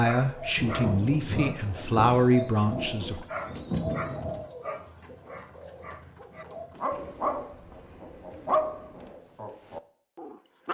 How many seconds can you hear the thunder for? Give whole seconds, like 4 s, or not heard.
4 s.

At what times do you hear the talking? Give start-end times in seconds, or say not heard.
0.0-3.2.